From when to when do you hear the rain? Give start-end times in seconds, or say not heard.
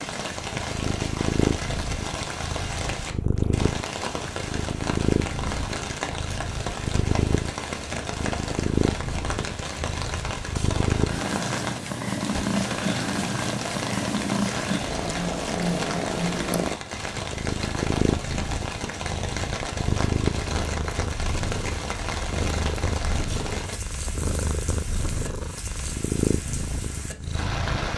0.0-27.9.